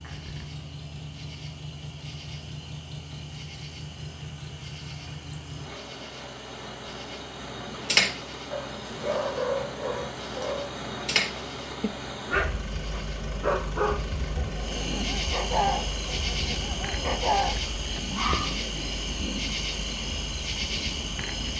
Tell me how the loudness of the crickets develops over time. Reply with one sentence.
The loudness of the crickets goes up.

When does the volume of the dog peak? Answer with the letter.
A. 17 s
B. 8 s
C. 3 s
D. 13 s
B.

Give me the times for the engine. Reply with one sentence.
The engine can be heard from 0.0 to 21.5 s.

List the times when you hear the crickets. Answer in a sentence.
You can hear the crickets from 0.0 to 21.5 s.